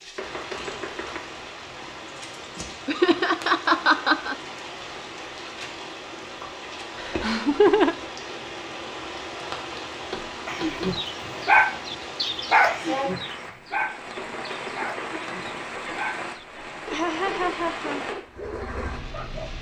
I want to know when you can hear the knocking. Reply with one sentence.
The knocking can be heard from 0.1 to 1.2 s, from 10.1 to 10.9 s and from 14.2 to 14.9 s.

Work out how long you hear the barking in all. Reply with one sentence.
The barking can be heard for 9 seconds in total.